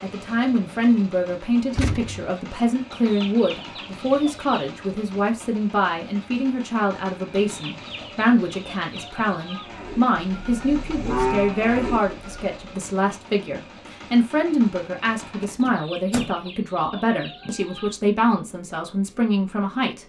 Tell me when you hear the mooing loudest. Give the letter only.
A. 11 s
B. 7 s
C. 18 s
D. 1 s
A.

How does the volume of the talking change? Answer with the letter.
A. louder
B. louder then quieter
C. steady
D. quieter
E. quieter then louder
C.